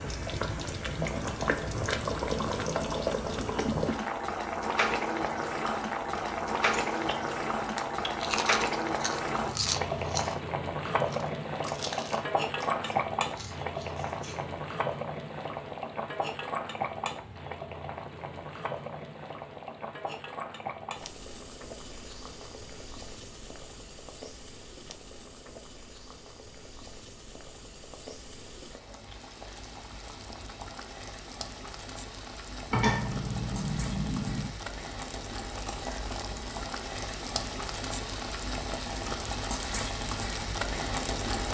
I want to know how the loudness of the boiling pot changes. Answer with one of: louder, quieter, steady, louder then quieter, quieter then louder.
quieter then louder.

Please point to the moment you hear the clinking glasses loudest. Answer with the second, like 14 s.
33 s.